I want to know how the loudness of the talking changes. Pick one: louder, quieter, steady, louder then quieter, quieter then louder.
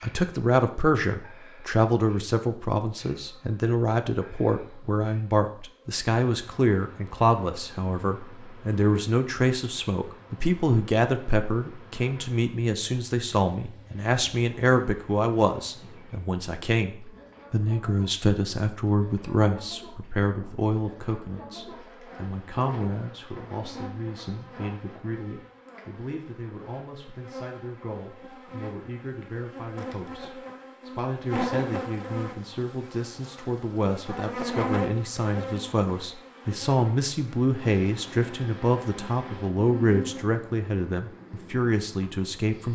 quieter then louder.